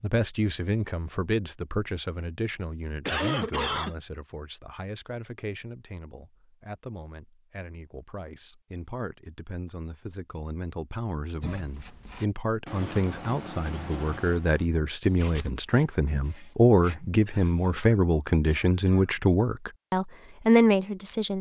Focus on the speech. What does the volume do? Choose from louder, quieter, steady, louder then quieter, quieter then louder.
quieter then louder.